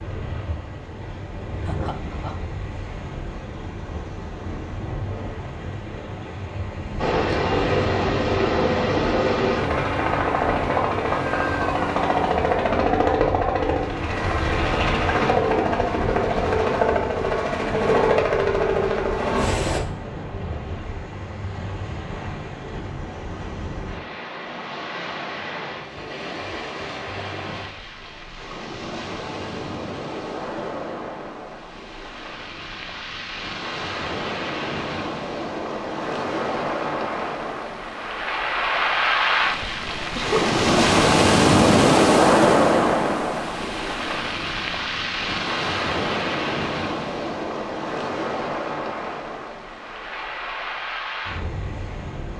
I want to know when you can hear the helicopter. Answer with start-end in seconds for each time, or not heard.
7.0-19.8.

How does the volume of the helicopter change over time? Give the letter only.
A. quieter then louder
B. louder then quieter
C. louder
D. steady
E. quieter
D.